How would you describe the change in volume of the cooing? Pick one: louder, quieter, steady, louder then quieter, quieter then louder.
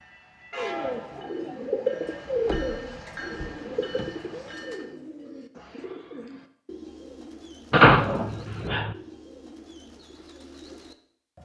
quieter.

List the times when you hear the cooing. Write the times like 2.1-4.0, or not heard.
0.6-11.4.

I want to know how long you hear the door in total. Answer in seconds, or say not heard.
3 s.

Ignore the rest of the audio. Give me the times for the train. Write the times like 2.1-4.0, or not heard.
0.0-5.0.